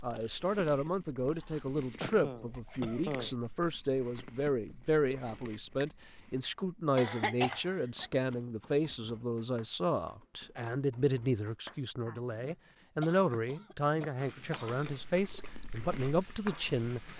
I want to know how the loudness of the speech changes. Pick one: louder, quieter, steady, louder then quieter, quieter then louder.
steady.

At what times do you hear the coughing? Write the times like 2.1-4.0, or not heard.
2.0-3.4, 7.0-8.1, 13.0-14.9.